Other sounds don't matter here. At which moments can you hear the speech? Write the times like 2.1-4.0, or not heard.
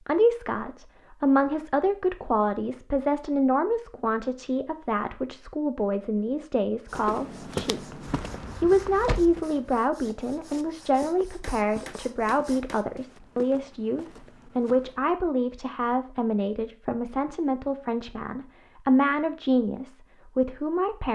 0.1-21.1.